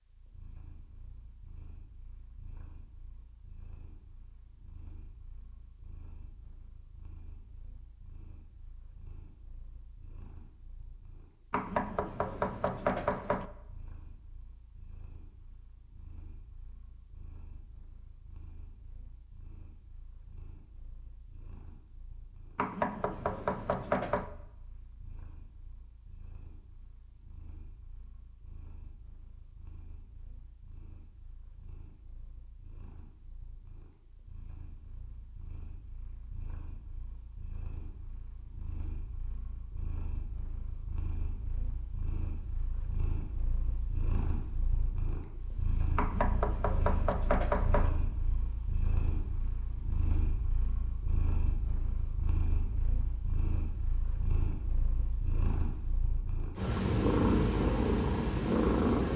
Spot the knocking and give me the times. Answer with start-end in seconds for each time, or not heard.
11.5-13.4, 22.6-24.3, 46.0-47.9.